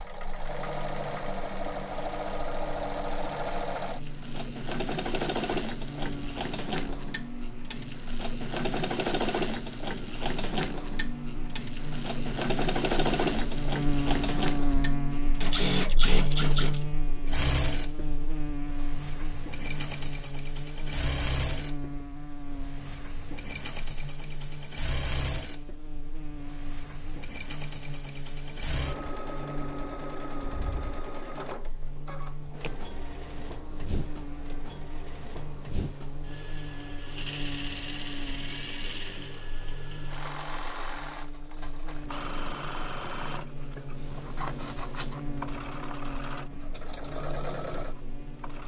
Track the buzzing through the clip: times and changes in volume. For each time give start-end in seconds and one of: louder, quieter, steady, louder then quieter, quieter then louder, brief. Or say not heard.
0.0-48.6 louder then quieter.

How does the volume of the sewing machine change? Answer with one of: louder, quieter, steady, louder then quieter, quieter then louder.
quieter.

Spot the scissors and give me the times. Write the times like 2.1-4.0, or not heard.
44.0-45.2.